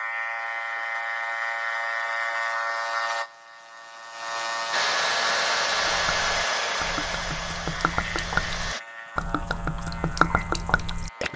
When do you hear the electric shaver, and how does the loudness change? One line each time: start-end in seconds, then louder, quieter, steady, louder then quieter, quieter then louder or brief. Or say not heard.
0.0-11.3 quieter.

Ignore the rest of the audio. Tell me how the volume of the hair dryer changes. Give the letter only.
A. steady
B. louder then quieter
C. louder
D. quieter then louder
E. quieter
E.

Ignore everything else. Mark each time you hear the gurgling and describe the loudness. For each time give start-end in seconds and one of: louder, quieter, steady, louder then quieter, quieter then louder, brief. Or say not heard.
5.7-11.3 louder.